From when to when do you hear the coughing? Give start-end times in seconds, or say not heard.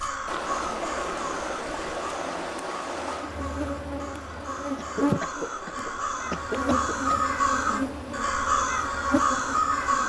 4.8-7.3.